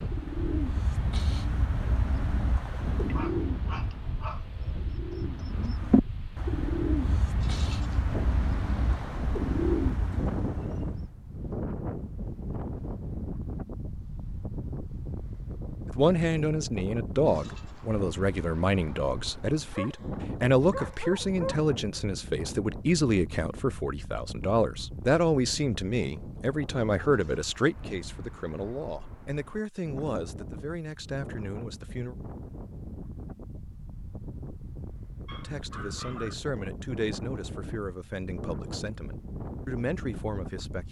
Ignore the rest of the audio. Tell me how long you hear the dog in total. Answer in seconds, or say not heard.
5 s.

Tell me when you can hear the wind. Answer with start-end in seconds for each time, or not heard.
0.0-40.8.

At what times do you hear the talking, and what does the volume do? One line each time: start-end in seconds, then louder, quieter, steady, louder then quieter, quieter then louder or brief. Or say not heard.
15.8-32.1 quieter
35.4-40.8 quieter then louder.